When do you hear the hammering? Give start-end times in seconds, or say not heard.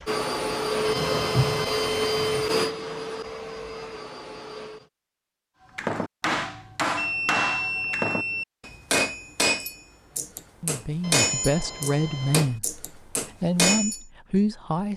5.8-14.0.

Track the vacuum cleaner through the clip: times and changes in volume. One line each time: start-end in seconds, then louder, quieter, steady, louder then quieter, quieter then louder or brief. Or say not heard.
0.0-4.9 quieter.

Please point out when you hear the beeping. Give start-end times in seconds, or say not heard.
0.8-2.5, 7.0-8.4, 11.0-12.4.